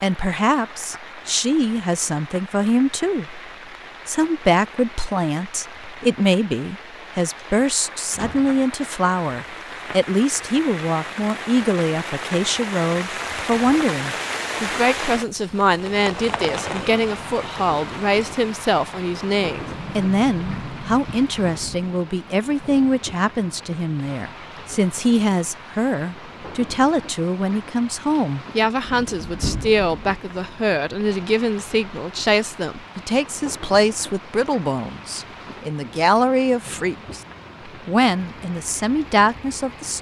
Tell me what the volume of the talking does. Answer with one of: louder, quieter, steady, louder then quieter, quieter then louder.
steady.